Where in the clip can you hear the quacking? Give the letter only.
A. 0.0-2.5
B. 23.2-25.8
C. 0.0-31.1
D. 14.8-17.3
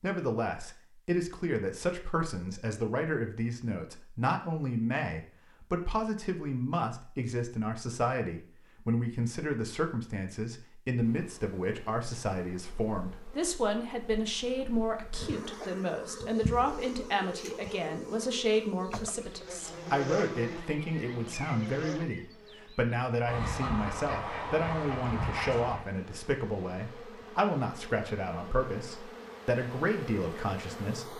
B.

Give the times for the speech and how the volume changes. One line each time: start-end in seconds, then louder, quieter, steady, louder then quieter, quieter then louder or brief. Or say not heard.
0.0-31.1 steady.